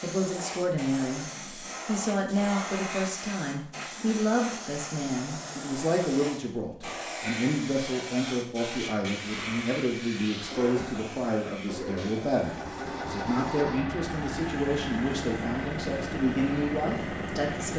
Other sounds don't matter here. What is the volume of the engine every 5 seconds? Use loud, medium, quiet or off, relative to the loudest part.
off, off, loud, loud.